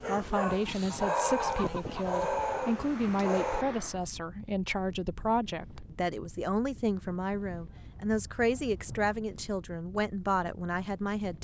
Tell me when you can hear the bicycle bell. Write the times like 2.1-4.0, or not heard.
not heard.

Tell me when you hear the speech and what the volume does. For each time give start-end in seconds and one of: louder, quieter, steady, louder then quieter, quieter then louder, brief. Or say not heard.
0.1-11.3 steady.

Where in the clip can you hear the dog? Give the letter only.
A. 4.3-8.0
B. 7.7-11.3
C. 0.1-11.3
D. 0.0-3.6
D.